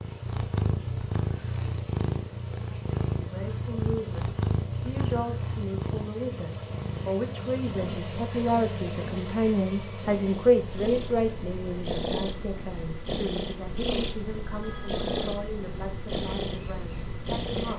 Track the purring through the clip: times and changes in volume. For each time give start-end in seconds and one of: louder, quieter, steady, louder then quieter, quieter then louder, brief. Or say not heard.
0.0-17.7 quieter then louder.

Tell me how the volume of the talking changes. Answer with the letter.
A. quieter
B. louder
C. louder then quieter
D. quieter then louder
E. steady
C.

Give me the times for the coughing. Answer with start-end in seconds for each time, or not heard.
not heard.